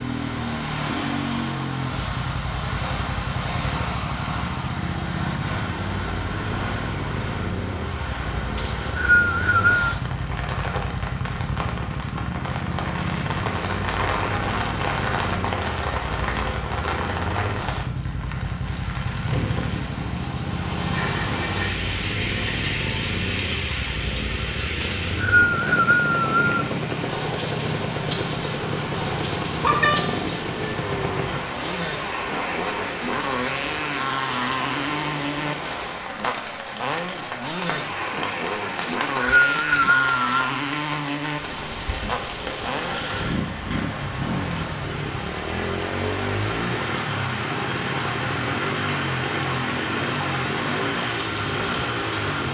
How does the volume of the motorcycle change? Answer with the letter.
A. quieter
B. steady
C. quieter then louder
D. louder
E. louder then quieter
B.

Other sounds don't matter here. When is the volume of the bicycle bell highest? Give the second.
30 s.